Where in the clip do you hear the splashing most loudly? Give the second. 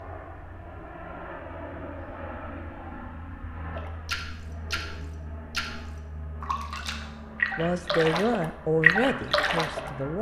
9 s.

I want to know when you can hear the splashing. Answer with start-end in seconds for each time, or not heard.
3.8-10.1.